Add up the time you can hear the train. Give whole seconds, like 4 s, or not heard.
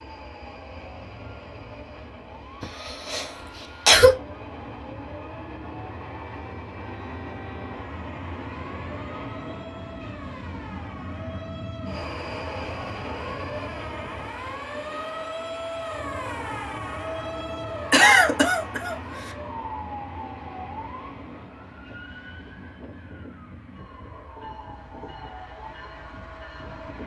27 s.